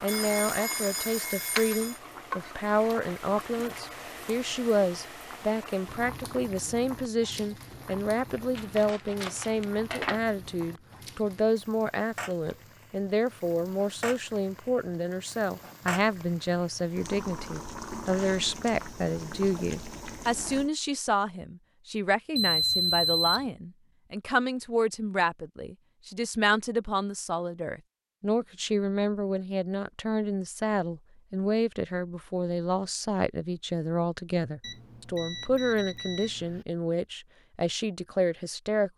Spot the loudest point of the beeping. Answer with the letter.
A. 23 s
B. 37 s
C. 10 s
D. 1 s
A.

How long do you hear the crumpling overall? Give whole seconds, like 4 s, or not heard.
2 s.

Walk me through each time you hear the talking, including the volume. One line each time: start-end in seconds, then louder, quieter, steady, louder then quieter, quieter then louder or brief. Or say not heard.
0.0-38.9 steady.